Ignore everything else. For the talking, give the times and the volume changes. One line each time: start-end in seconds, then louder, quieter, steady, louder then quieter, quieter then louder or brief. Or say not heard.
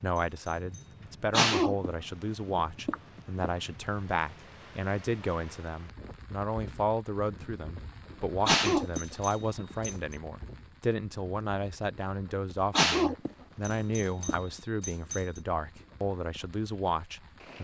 0.0-17.5 steady.